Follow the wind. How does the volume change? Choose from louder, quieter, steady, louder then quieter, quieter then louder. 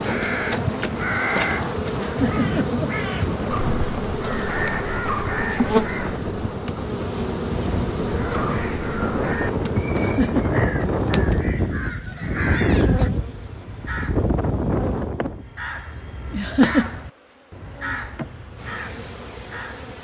louder.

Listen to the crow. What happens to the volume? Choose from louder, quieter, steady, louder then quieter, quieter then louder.
quieter.